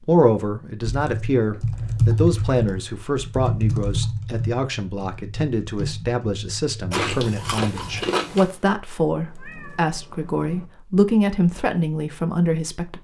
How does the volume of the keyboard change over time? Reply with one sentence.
The loudness of the keyboard goes down.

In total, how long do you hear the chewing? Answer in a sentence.
The chewing can be heard for 2 seconds in total.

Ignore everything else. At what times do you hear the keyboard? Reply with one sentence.
The keyboard can be heard from 0.8 to 8.1 s.